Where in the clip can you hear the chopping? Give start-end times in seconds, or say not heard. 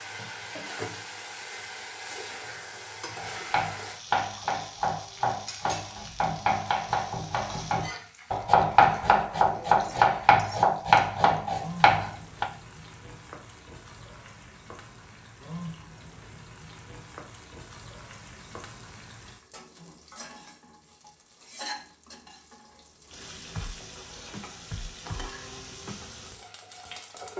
3.1-12.5.